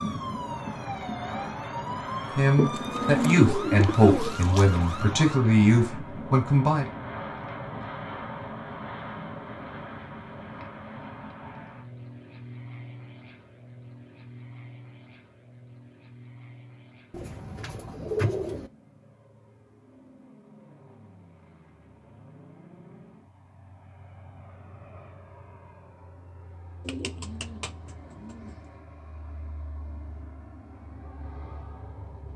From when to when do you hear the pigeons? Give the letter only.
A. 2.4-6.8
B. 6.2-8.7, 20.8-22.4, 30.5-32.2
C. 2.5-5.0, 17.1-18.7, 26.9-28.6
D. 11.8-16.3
C.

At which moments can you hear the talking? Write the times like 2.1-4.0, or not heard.
2.4-6.8.